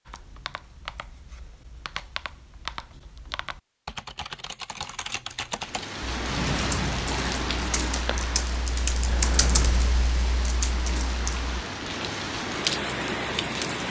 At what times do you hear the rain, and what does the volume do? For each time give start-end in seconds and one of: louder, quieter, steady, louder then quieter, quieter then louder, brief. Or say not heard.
5.6-13.8 quieter then louder.